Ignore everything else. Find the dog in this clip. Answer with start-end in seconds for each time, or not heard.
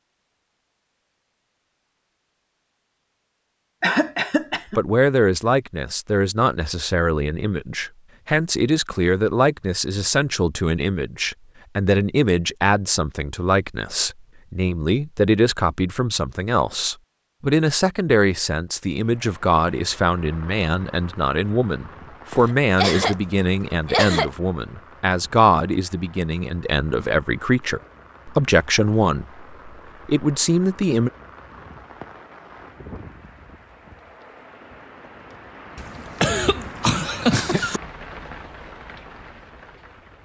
not heard.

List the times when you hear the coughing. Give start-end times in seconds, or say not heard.
3.8-4.8, 22.4-23.1, 23.9-24.3, 35.8-37.8.